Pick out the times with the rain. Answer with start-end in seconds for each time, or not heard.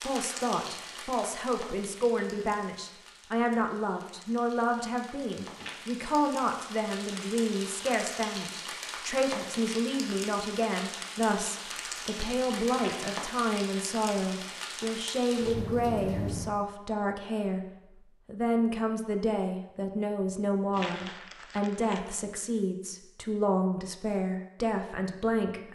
0.0-16.5.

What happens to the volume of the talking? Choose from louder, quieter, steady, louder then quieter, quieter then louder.
steady.